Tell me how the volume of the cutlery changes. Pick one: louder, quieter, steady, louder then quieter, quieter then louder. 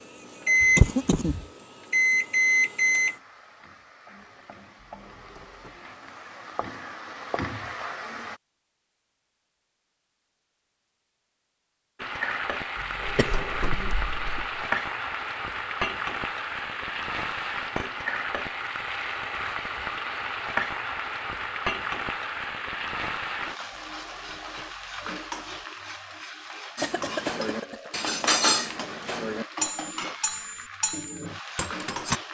louder then quieter.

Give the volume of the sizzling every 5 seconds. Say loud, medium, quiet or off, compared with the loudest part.
quiet, medium, loud, loud, loud, medium, medium.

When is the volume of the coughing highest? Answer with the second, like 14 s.
1 s.